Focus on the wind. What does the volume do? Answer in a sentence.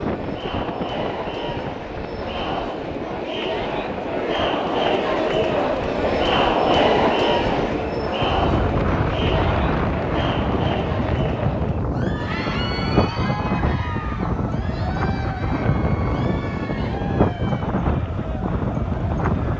The volume of the wind goes up.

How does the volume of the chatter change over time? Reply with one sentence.
The volume of the chatter goes up, then down.